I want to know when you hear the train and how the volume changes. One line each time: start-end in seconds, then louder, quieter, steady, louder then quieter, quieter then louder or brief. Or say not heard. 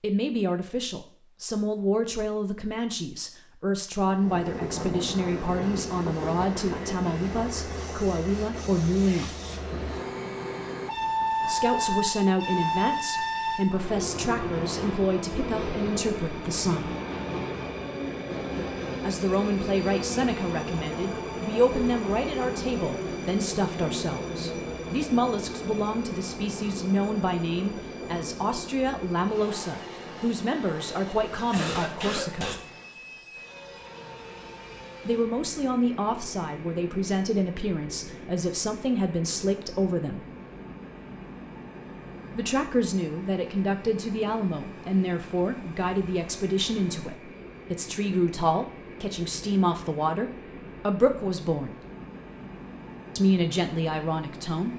4.0-54.7 quieter.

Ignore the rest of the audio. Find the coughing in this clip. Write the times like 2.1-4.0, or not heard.
31.3-32.7.